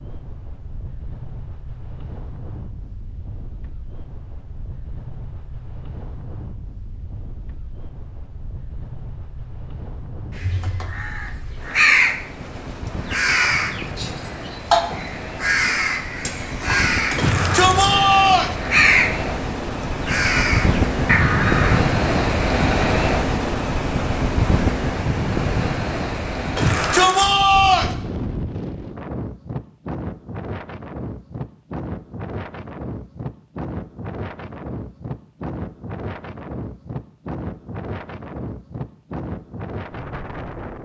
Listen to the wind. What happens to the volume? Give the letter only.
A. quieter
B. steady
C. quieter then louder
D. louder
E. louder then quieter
E.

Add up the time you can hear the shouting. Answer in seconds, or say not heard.
3 s.